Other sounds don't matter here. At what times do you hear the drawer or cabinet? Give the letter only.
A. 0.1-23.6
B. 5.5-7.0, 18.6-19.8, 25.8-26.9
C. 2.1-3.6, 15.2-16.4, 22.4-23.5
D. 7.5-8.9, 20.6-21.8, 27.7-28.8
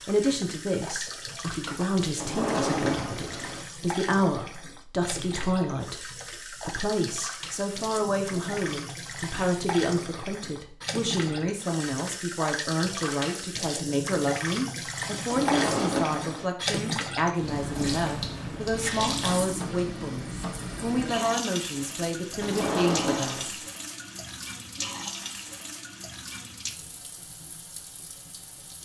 C.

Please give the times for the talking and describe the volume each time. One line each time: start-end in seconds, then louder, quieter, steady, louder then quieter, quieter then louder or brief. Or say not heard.
0.1-23.6 steady.